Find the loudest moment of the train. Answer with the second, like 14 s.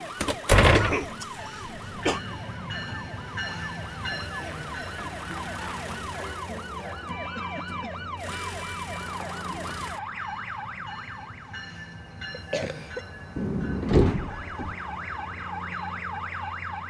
4 s.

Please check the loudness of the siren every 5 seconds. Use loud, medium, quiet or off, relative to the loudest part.
medium, loud, loud, loud.